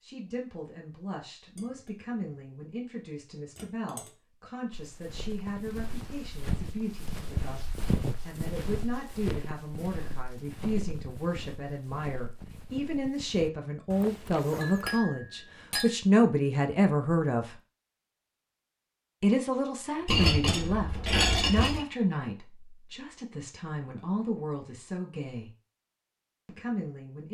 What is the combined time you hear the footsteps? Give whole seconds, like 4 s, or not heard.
10 s.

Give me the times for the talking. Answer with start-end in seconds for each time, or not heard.
0.0-17.6, 19.2-25.5, 26.4-27.3.